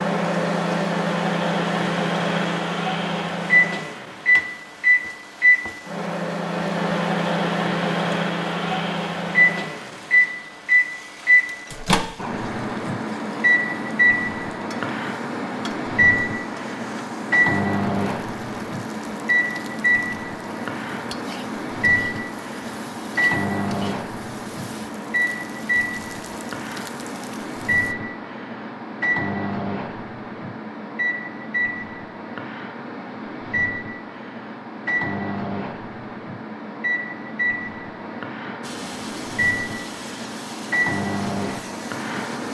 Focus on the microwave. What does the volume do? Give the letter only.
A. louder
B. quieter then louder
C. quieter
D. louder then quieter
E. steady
C.